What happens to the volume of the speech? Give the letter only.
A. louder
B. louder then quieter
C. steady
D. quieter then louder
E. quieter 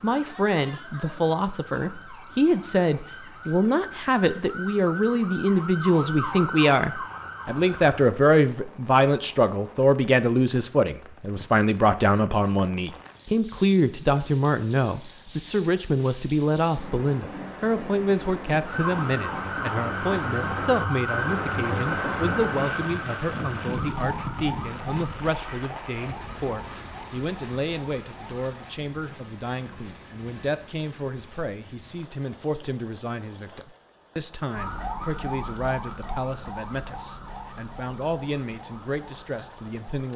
E.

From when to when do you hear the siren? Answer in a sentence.
You can hear the siren from 0.0 to 8.0 s, from 18.6 to 28.4 s and from 34.5 to 40.1 s.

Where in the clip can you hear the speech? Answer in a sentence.
The speech can be heard from 0.0 to 40.1 s.